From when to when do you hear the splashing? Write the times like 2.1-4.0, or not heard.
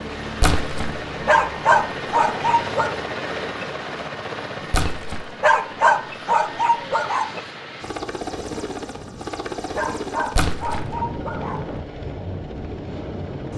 0.3-1.0, 4.7-5.3, 10.3-10.9.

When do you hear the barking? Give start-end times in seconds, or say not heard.
1.2-2.9, 5.4-7.4, 9.8-11.8.